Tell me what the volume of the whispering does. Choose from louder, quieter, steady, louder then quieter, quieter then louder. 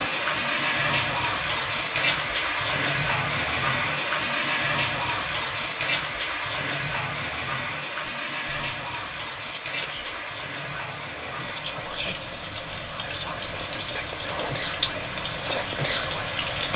louder.